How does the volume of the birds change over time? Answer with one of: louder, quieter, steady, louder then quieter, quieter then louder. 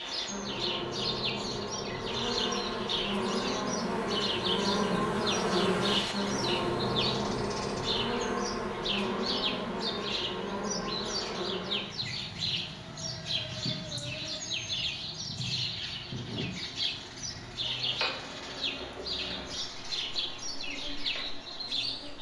steady.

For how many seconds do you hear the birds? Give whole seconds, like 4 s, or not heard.
22 s.